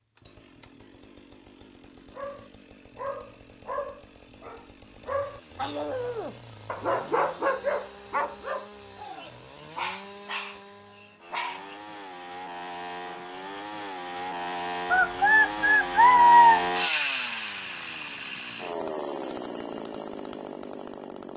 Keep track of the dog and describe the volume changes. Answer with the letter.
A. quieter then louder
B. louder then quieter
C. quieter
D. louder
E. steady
B.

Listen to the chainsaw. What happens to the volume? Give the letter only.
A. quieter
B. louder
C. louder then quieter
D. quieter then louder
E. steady
B.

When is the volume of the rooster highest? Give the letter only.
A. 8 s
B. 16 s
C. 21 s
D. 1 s
B.